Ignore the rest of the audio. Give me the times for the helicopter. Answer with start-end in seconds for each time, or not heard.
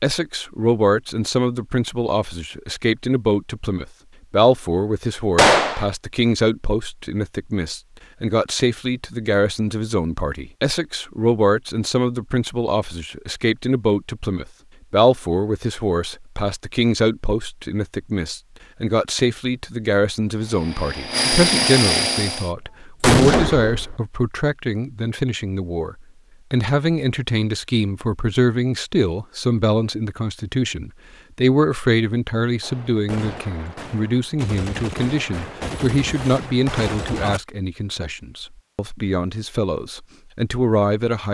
20.4-22.5.